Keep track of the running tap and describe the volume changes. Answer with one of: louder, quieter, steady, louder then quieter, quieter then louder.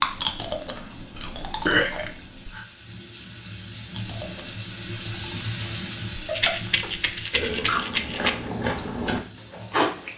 louder then quieter.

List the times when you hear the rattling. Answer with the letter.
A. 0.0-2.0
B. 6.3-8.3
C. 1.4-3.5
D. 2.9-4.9
B.